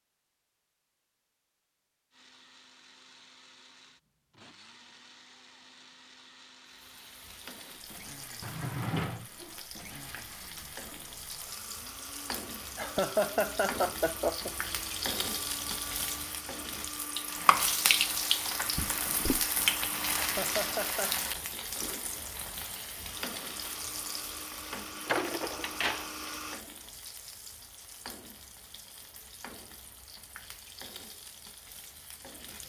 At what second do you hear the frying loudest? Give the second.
18 s.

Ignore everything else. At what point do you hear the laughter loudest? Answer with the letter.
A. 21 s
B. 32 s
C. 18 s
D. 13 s
D.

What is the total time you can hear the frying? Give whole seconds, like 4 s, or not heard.
26 s.